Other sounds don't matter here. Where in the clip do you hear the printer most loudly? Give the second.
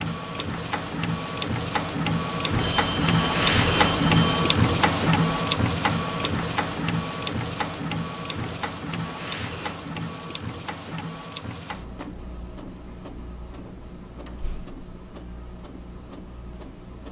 4 s.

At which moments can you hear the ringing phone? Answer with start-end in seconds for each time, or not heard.
2.5-4.5.